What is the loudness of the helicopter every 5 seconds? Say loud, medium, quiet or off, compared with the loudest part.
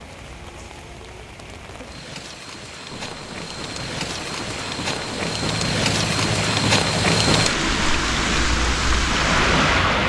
medium, loud.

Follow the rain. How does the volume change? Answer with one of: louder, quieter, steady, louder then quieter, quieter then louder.
louder.